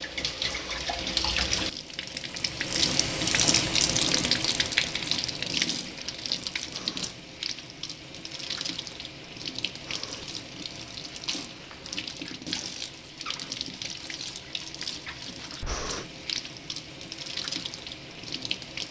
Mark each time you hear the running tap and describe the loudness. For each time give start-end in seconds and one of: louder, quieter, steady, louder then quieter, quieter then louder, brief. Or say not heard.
0.0-18.8 quieter.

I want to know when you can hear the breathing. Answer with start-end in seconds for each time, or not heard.
0.4-0.8, 6.7-7.2, 9.8-10.2, 15.7-16.1.